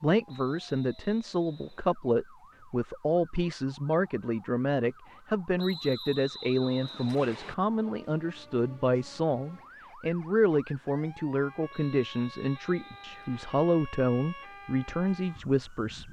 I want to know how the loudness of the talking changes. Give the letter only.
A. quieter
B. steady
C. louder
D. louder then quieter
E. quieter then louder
B.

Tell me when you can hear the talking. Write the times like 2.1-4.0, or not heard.
0.0-16.0.